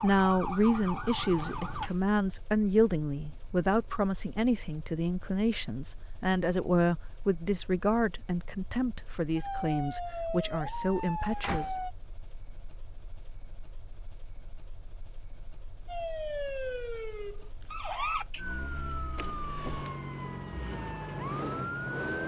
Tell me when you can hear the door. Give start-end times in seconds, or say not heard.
1.4-2.1, 10.9-11.9, 19.1-19.9.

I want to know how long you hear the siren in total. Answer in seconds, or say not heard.
11 s.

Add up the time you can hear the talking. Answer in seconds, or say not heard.
12 s.